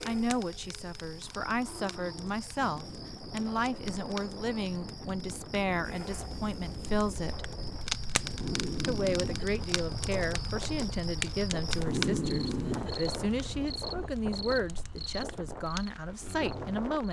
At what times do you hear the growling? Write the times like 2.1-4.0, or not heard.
1.2-2.7, 8.3-9.7, 11.8-13.6.